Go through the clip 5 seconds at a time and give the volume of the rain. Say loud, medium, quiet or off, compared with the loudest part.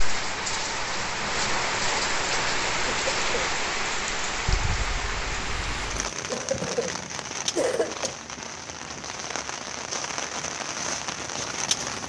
loud, medium, loud.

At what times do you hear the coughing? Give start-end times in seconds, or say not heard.
2.9-3.5, 6.3-8.2.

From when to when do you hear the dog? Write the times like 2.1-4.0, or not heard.
4.7-6.1.